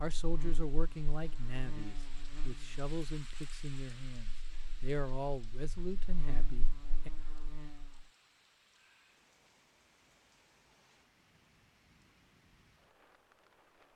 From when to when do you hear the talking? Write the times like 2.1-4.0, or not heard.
0.0-7.1.